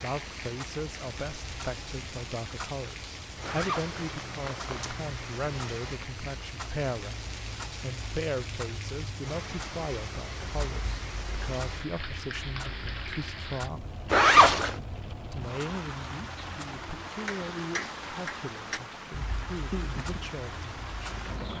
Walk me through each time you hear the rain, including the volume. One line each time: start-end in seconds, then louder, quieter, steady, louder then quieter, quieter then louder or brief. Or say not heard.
0.0-21.5 steady.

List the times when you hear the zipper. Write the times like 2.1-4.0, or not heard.
3.4-5.0, 14.1-14.8.